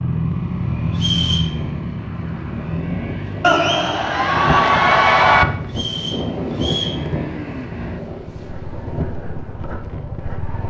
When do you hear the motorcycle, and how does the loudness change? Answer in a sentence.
You can hear the motorcycle from 0.0 to 10.6 s, getting quieter.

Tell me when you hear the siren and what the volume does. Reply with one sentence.
You can't hear the siren here.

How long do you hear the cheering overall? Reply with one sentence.
The cheering can be heard for 2 seconds in total.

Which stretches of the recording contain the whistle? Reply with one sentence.
The whistle can be heard from 0.9 to 1.5 s and from 5.7 to 7.0 s.